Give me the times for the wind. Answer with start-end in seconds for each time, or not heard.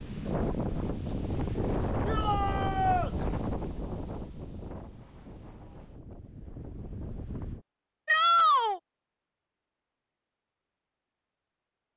0.0-7.7.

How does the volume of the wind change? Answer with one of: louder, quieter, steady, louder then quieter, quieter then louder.
quieter.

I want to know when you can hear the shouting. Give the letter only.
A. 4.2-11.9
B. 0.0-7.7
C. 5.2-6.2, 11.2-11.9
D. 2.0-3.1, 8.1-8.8
D.